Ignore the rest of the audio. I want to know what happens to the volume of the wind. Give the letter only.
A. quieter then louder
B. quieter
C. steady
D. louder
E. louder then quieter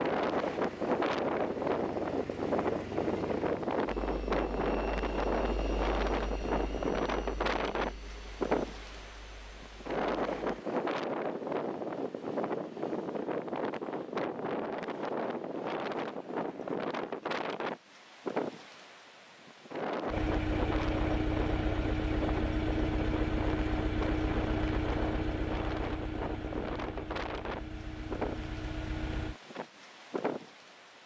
B.